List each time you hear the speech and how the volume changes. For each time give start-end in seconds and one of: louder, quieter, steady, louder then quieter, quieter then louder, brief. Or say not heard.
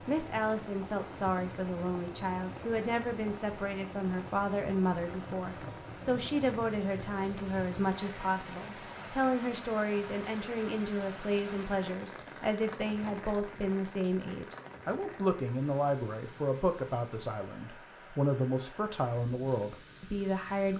0.1-20.7 steady.